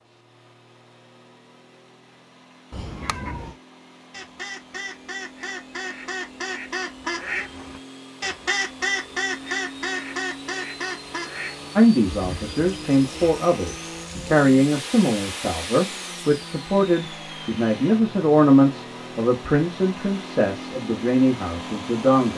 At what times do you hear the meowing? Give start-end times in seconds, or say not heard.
2.7-3.5.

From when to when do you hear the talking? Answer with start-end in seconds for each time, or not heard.
11.8-22.3.